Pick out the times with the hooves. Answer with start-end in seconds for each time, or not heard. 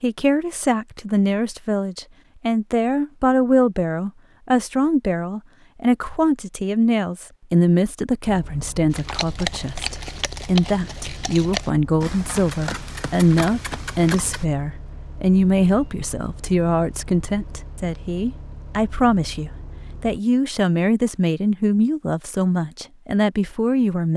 8.9-14.4.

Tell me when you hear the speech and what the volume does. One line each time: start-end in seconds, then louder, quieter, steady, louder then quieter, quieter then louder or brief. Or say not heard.
0.0-24.1 steady.